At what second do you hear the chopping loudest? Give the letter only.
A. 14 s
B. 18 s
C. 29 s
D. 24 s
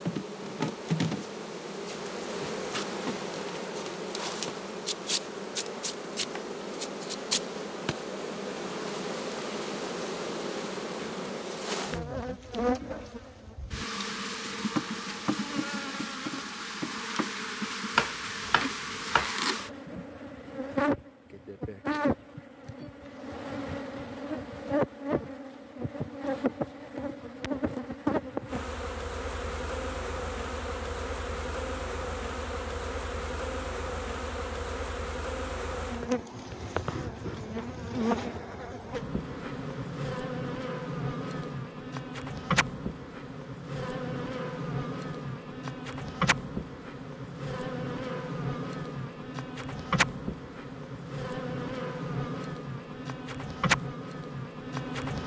B.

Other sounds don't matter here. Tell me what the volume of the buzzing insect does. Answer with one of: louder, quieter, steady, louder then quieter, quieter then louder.
steady.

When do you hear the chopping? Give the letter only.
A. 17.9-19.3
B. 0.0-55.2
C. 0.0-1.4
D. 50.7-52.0
A.